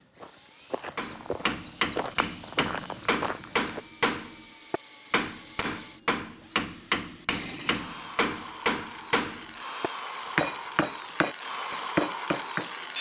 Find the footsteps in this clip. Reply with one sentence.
The footsteps can be heard from 0.0 to 3.8 s.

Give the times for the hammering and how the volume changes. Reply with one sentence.
You can hear the hammering from 0.9 to 12.7 s, at a steady volume.